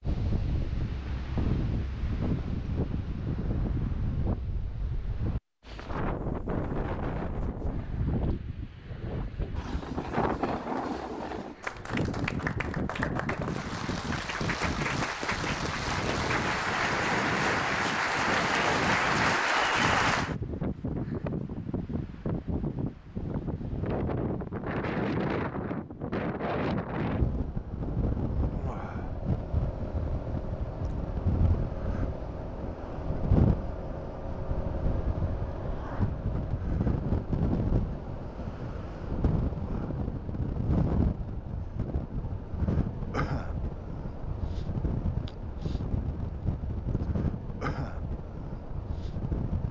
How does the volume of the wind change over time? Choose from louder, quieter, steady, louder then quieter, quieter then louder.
steady.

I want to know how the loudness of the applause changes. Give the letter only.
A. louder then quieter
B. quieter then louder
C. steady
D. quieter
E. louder
E.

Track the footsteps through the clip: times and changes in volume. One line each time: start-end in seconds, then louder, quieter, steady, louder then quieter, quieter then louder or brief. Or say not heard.
not heard.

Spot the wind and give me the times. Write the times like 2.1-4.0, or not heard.
0.0-49.6.